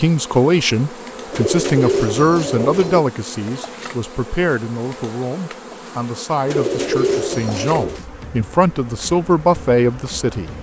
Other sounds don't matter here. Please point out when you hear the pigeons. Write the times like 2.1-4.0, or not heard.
1.3-3.0, 6.5-8.0.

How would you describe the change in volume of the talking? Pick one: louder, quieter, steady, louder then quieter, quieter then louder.
quieter then louder.